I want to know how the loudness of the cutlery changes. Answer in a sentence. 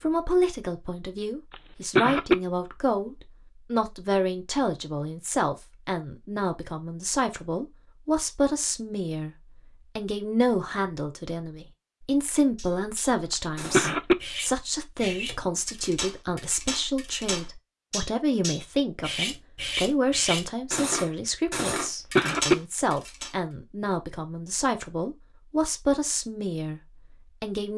The volume of the cutlery goes up.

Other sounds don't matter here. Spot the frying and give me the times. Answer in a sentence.
You can't hear the frying here.